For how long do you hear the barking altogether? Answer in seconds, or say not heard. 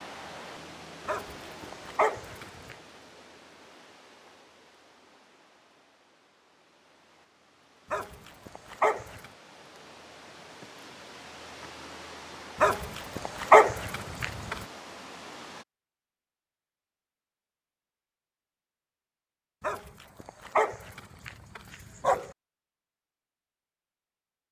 8 s.